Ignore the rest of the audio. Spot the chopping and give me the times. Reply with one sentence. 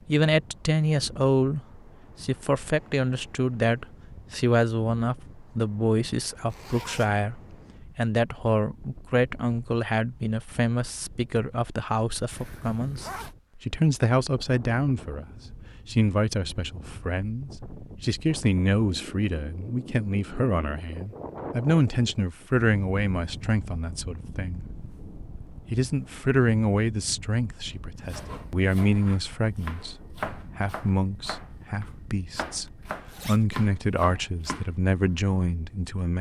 You can hear the chopping from 28.1 to 34.7 s.